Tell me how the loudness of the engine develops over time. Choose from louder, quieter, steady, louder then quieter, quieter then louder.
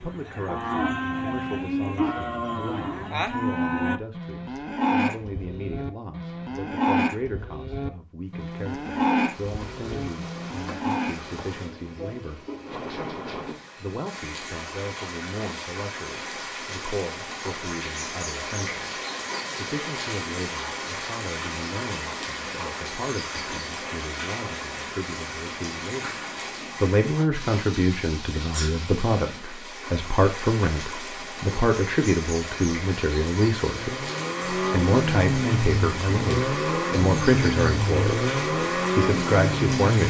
steady.